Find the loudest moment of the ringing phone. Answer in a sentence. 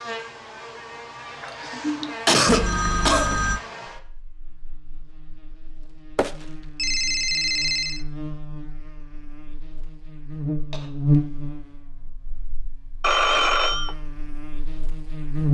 The volume of the ringing phone peaks at 13 seconds.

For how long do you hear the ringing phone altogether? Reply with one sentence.
The ringing phone can be heard for 4 seconds in total.